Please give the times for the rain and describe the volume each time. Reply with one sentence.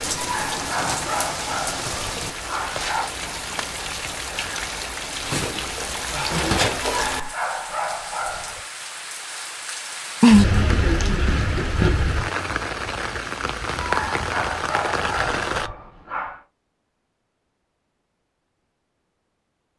The rain can be heard from 0.0 to 15.7 s, getting louder then quieter.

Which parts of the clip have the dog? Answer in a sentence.
You can hear the dog from 0.1 to 3.1 s, from 6.8 to 8.7 s and from 13.8 to 16.4 s.